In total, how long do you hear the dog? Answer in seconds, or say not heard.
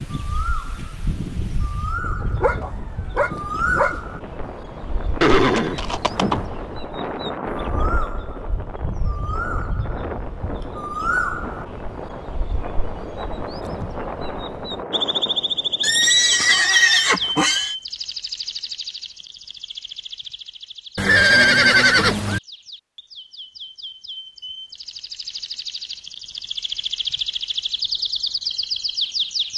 2 s.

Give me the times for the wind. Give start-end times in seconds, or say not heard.
0.0-16.6.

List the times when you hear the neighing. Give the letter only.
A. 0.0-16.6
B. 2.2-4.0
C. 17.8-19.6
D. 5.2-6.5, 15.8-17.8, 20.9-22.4
D.